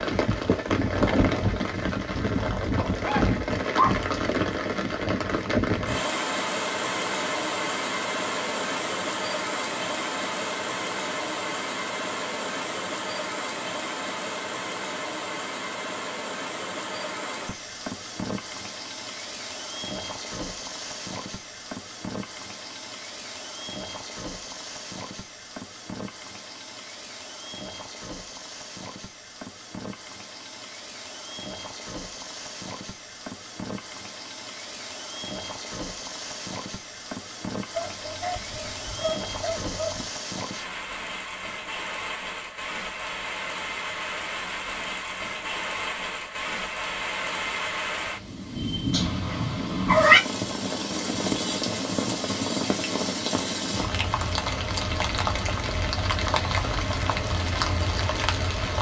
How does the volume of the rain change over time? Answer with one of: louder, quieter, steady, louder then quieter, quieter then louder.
quieter then louder.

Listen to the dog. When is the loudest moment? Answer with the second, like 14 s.
4 s.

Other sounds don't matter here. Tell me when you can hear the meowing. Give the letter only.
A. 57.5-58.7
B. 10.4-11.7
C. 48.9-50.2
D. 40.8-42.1
C.